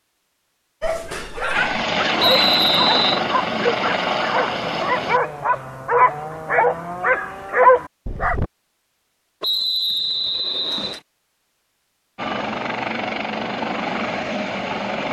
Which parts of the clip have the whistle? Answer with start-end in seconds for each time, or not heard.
2.1-3.2, 9.4-11.0.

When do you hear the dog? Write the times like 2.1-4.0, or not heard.
0.8-8.4.